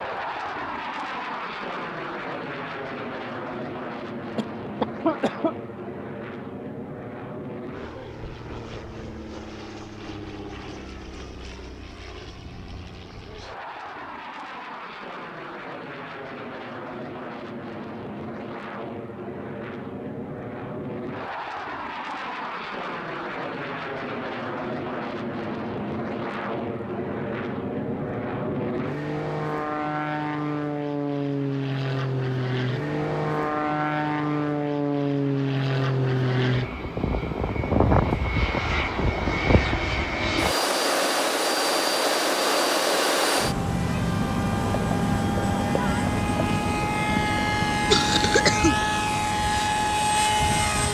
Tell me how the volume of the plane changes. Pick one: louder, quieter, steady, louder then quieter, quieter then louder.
louder.